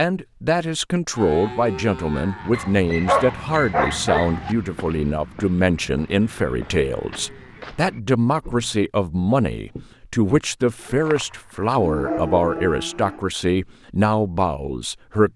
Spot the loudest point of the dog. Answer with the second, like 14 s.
3 s.